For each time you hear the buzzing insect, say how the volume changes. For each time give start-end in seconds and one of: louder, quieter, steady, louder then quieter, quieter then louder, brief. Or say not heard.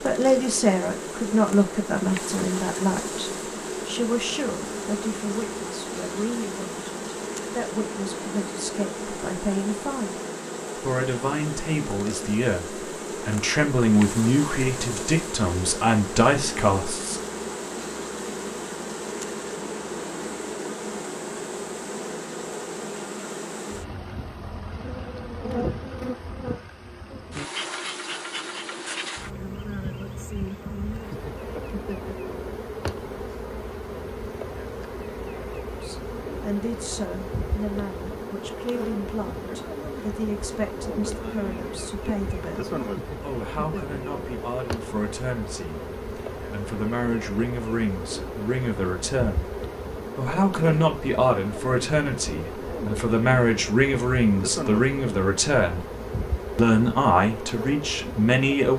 0.0-58.7 steady.